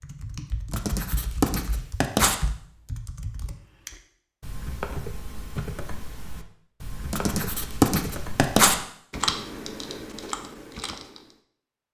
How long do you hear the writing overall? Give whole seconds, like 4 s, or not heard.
3 s.